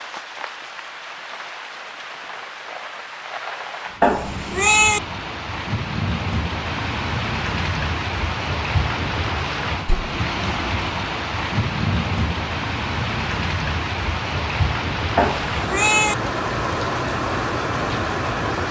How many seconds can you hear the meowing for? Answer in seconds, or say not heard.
2 s.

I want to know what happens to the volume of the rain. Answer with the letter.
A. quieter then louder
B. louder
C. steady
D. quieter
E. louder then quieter
B.